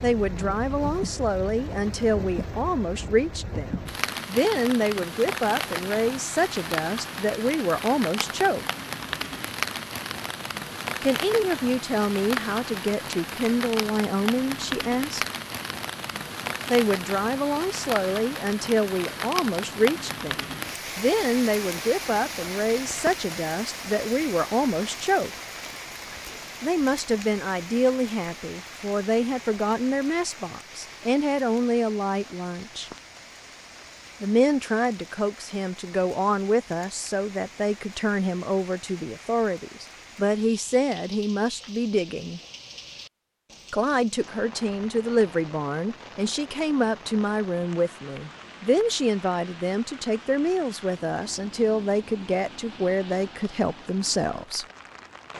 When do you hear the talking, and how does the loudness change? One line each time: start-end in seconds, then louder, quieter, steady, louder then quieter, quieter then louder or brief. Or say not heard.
0.0-8.7 steady
11.0-15.2 steady
16.7-25.3 steady
26.6-32.9 steady
34.2-42.4 steady
43.7-54.6 steady.